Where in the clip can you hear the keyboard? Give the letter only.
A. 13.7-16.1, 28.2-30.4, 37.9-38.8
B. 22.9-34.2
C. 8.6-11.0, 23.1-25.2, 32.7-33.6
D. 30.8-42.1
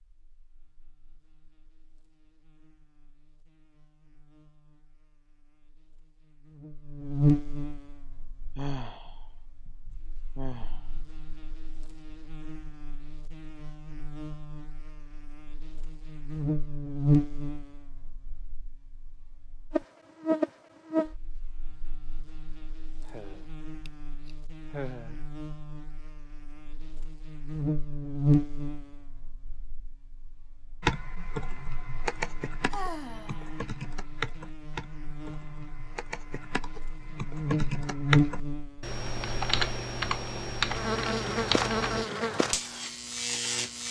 D.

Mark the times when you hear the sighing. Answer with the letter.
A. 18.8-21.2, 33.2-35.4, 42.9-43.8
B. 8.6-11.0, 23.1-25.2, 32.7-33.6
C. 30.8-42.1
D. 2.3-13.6
B.